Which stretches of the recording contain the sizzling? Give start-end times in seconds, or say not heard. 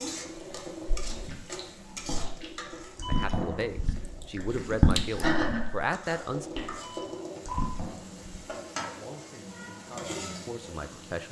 0.0-11.2.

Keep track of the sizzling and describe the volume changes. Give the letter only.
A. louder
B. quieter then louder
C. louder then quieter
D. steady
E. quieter
B.